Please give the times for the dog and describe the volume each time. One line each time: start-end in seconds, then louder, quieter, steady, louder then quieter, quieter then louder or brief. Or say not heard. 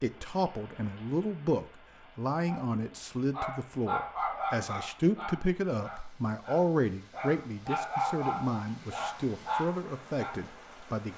2.5-10.4 quieter then louder.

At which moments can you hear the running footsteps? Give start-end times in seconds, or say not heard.
not heard.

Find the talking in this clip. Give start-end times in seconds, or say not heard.
0.0-11.1.